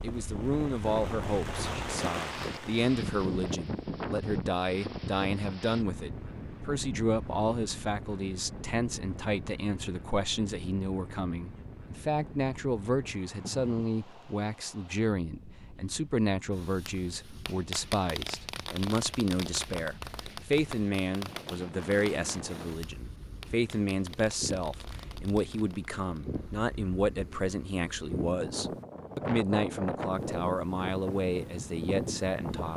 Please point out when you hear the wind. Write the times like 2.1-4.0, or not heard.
0.0-32.7.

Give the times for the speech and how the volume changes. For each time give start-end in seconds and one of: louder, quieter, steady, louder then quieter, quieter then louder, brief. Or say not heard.
0.0-32.7 steady.